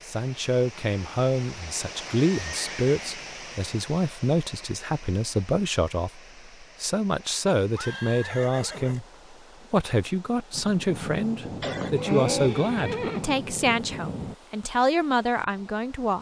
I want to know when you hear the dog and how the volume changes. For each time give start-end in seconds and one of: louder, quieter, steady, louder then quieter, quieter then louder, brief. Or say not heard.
not heard.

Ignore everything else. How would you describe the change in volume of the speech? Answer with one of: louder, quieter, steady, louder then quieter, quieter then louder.
steady.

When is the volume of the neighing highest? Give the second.
12 s.